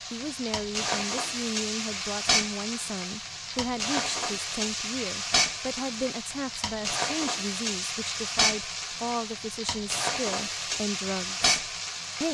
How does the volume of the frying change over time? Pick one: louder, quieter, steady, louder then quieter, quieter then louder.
steady.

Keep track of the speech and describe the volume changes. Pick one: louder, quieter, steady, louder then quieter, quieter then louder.
steady.